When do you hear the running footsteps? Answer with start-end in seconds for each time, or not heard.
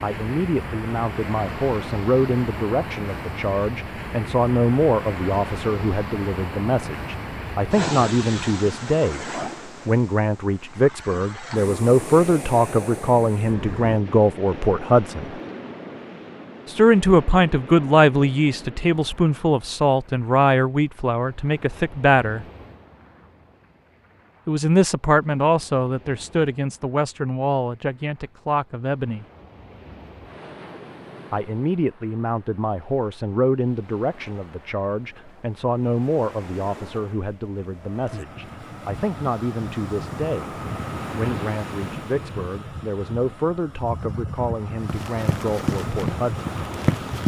44.9-47.2.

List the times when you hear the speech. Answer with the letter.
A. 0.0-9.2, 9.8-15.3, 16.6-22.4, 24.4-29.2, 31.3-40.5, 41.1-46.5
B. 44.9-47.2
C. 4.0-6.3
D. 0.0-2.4
A.